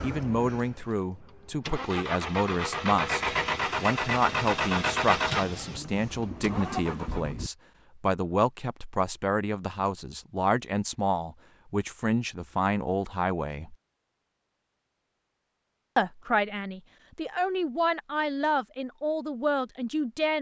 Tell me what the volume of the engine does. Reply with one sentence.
The volume of the engine goes up, then down.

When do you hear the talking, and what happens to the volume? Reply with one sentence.
You can hear the talking from 0.0 to 13.8 s, at a steady volume; and from 15.9 to 20.3 s, at a steady volume.